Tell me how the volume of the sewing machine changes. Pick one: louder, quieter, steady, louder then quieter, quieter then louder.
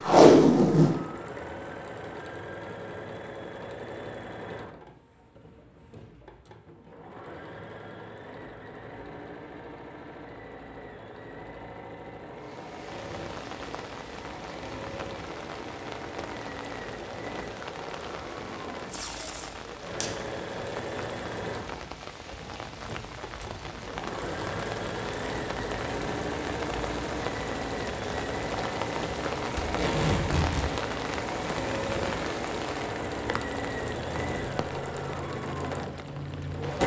louder.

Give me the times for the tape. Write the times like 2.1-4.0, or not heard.
0.0-1.0, 18.9-20.1, 29.6-30.6.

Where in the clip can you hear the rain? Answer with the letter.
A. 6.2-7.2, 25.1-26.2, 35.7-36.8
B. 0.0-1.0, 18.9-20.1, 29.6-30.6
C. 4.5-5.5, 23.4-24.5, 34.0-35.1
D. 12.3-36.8
D.